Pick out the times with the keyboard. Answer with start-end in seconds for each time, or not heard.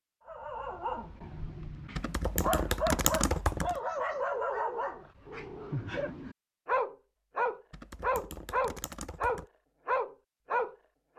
1.9-3.8, 7.7-9.4.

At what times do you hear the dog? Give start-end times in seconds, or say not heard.
0.2-11.1.